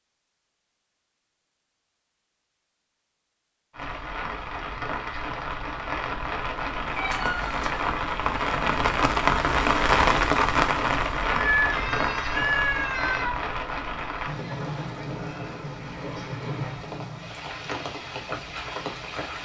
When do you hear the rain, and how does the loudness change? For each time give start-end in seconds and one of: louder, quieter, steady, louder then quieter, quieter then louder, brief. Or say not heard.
3.7-19.3 louder then quieter.